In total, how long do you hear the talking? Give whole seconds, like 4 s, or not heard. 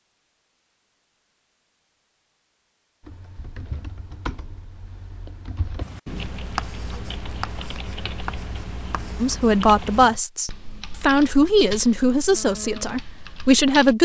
5 s.